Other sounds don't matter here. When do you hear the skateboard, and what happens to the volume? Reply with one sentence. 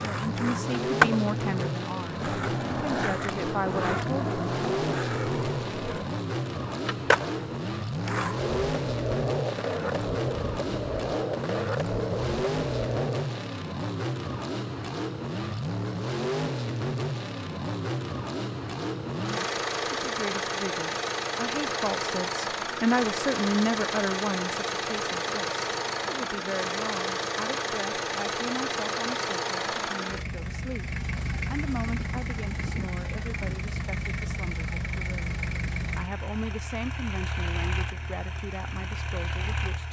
The skateboard can be heard from 0.0 to 13.3 s, getting quieter.